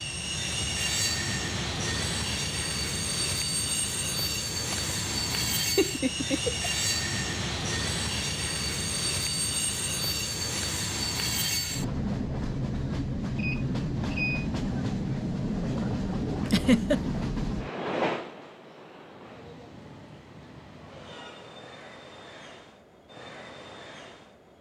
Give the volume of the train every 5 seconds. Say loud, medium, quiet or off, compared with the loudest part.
loud, loud, loud, loud, quiet.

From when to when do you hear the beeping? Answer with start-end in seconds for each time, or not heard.
13.3-14.5.